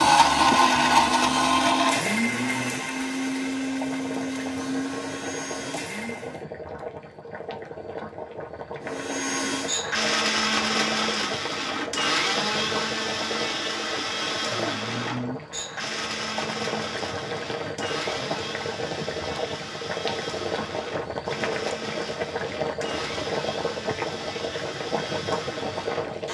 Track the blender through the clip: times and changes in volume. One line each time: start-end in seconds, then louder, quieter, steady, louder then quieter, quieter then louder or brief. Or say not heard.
0.0-6.4 quieter
8.8-26.2 quieter.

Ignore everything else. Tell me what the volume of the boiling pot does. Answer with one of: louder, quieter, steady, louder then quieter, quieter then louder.
louder.